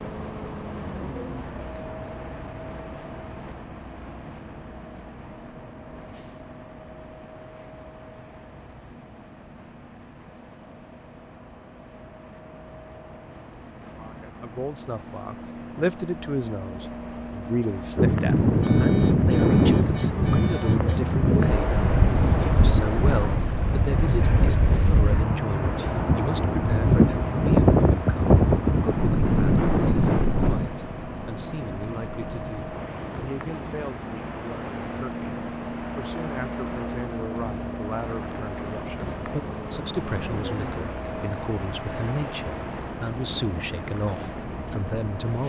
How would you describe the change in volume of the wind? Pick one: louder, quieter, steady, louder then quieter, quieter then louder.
quieter.